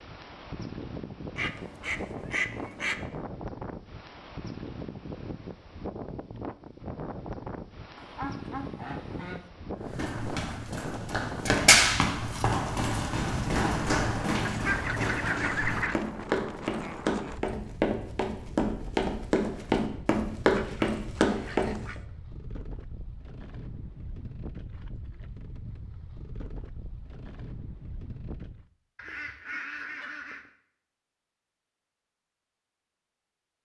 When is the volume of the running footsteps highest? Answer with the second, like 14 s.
12 s.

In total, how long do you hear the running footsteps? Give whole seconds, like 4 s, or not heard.
12 s.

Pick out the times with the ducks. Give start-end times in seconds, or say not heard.
1.4-3.0, 8.0-9.5, 14.4-15.9, 20.5-21.9, 28.9-30.5.